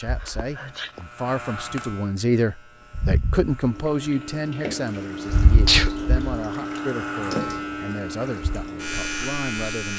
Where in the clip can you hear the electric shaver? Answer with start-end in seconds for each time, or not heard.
0.0-4.1, 5.2-9.9.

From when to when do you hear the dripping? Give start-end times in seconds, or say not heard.
3.7-9.9.